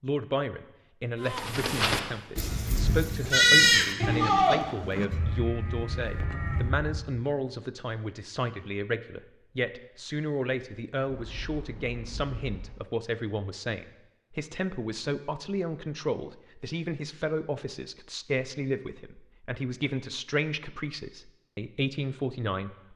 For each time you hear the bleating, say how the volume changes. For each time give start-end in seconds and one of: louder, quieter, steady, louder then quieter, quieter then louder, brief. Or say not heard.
1.2-7.1 louder then quieter.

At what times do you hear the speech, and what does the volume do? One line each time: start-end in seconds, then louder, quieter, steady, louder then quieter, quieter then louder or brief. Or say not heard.
0.0-22.9 steady.